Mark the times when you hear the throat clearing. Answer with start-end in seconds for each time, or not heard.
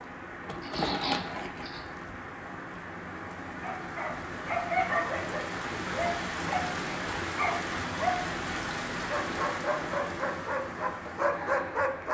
0.6-1.9.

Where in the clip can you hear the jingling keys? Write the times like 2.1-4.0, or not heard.
0.4-2.1.